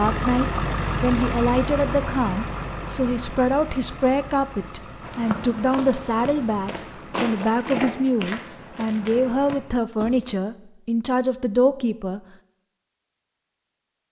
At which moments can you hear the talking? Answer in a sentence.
You can hear the talking from 0.0 to 12.2 s.